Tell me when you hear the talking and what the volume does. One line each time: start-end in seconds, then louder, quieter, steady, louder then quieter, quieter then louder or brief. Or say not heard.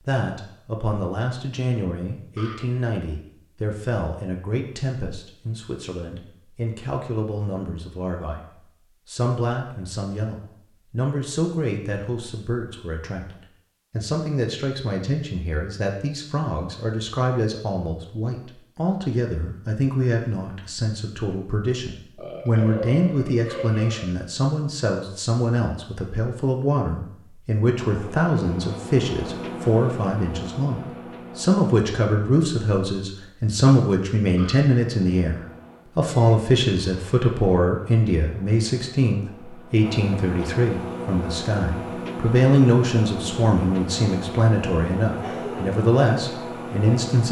0.0-47.2 louder.